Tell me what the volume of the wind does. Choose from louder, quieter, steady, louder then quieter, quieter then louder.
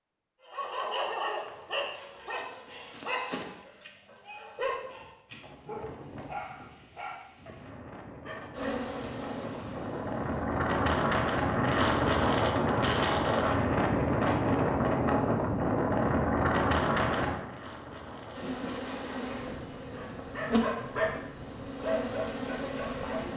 louder then quieter.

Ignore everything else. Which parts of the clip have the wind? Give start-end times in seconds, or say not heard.
4.7-23.3.